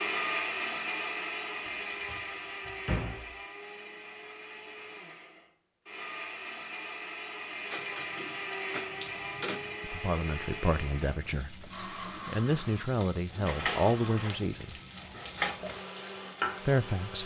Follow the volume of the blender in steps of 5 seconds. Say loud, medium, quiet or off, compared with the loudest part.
loud, loud, medium, medium.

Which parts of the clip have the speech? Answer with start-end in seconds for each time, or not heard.
9.8-14.8, 16.6-17.2.